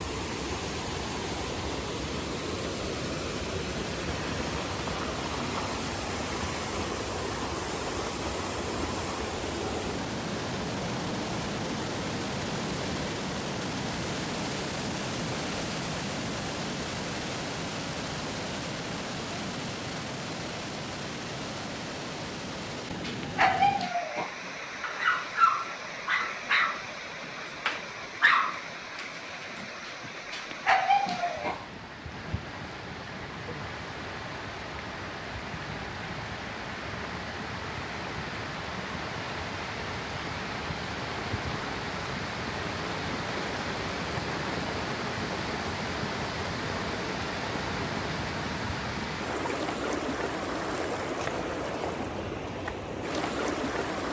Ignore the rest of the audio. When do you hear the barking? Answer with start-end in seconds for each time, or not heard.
23.0-31.8.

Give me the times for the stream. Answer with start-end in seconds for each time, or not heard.
0.0-54.0.